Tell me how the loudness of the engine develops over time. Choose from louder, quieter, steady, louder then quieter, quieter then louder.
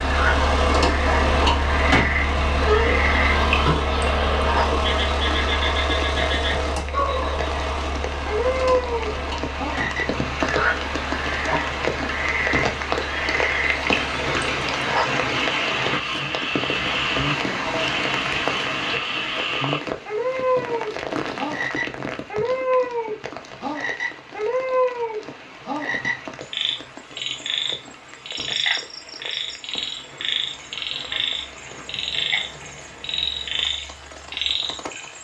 quieter.